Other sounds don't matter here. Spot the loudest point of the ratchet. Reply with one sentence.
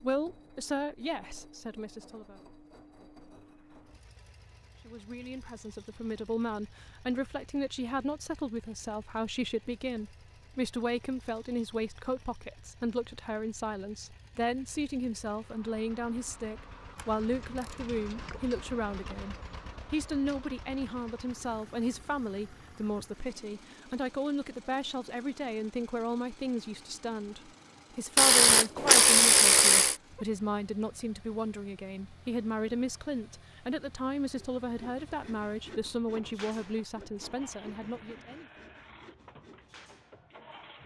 The volume of the ratchet peaks at 29 seconds.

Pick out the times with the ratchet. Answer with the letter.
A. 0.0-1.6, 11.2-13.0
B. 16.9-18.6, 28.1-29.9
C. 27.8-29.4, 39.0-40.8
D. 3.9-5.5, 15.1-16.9
B.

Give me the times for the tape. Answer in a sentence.
You can't hear the tape here.